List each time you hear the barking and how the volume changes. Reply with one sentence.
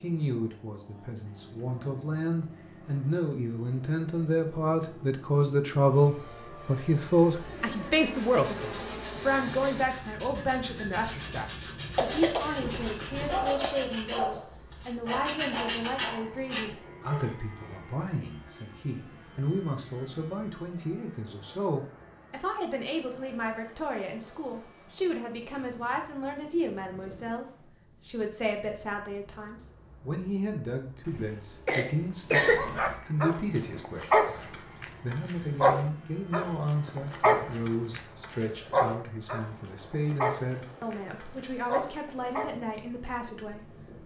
The barking can be heard briefly from 13.2 to 14.4 s; briefly from 15.1 to 17.4 s; and from 32.5 to 42.5 s, getting quieter.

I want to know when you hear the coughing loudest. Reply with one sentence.
The volume of the coughing peaks at 32 seconds.